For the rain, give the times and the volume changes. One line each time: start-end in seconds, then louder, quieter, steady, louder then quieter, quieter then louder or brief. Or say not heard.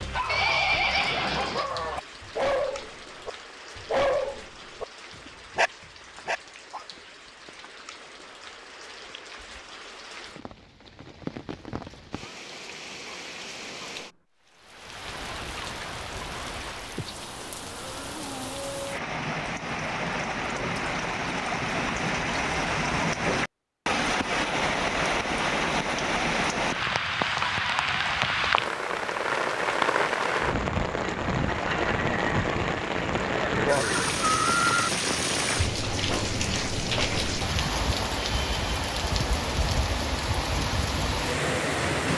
0.0-42.1 louder.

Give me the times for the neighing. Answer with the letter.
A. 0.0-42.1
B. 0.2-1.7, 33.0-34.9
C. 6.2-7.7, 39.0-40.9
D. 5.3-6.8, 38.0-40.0
B.